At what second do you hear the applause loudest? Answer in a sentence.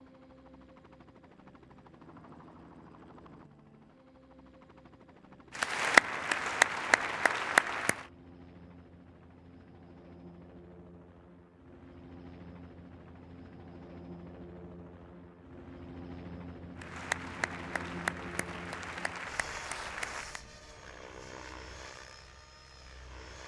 The loudest moment of the applause is at 6 seconds.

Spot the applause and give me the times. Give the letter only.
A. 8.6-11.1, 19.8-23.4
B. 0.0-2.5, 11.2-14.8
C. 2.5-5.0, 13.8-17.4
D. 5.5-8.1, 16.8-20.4
D.